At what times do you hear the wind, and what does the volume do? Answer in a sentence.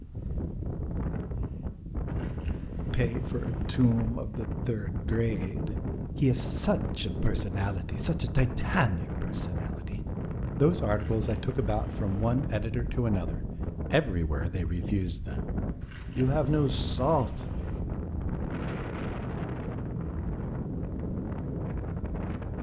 You can hear the wind from 0.0 to 22.5 s, at a steady volume.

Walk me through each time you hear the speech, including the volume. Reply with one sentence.
The speech can be heard from 2.6 to 17.7 s, at a steady volume.